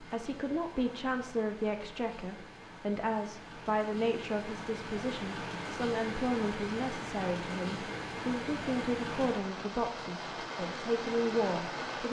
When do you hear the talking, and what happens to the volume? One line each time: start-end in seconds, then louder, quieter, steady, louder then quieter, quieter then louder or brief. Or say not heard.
0.0-12.0 steady.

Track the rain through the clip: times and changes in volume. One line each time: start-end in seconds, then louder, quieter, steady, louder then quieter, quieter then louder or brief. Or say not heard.
0.0-12.0 louder.